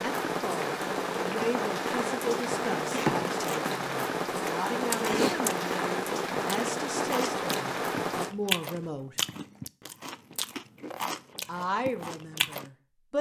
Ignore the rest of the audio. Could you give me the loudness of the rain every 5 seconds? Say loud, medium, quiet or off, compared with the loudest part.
loud, loud, off.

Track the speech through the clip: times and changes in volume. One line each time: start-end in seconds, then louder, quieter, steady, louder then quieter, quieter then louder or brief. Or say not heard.
0.0-9.2 steady
11.4-13.1 brief.